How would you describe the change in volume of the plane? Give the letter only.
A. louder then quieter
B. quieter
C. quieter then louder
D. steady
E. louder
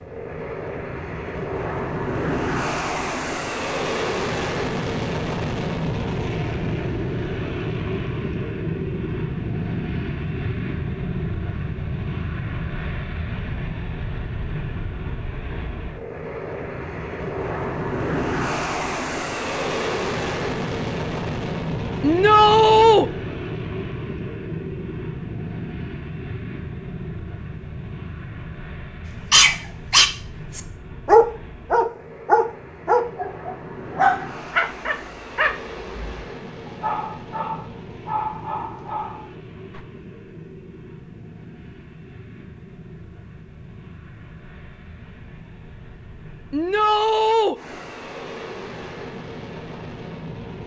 B.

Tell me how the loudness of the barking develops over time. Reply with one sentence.
The loudness of the barking goes down.